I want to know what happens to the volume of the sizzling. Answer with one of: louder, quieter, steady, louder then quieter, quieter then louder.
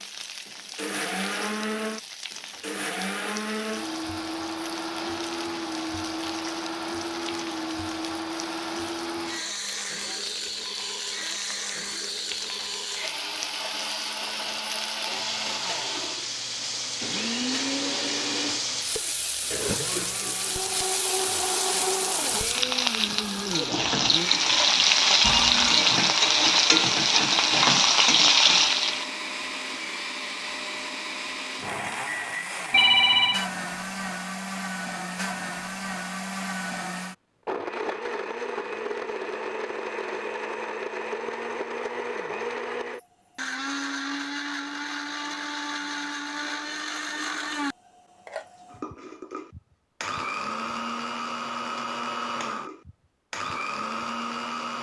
louder.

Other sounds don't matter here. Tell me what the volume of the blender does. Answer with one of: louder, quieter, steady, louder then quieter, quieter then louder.
steady.